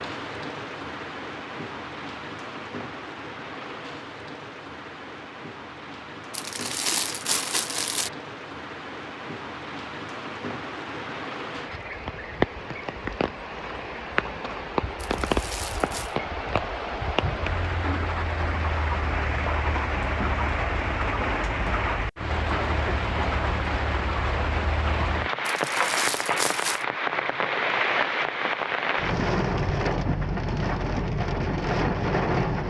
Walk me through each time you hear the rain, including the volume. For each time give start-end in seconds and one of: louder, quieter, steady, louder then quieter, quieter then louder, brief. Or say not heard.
0.0-32.6 louder.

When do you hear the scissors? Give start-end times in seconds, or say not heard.
not heard.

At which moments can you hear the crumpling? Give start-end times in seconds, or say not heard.
6.3-8.1, 14.9-16.1, 25.4-26.9.